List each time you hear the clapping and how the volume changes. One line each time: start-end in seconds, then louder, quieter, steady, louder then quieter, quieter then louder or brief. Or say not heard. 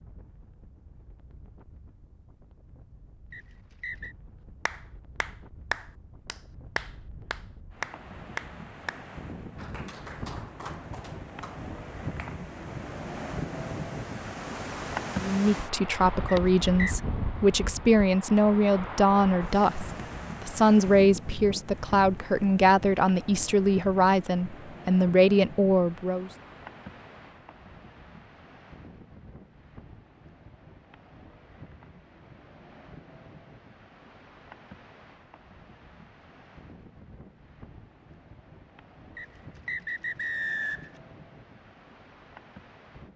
4.7-12.4 quieter.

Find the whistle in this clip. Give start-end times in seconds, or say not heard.
3.3-4.2, 16.2-16.9, 39.1-40.9.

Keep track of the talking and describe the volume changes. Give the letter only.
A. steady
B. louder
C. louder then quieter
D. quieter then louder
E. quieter
A.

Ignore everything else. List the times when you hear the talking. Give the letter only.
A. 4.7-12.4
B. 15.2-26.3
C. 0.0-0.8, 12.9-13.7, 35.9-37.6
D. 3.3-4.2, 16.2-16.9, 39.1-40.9
B.